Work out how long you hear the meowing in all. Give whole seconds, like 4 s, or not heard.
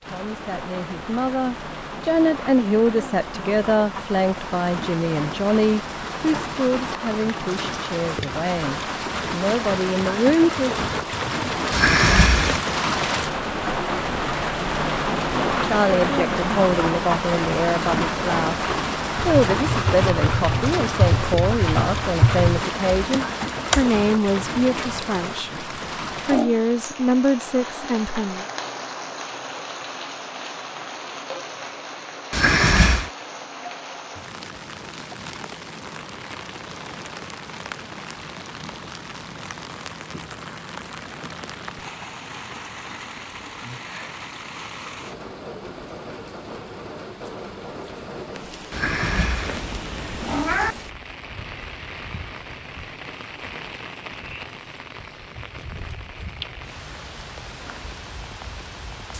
4 s.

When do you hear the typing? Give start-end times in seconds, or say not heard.
19.2-23.9.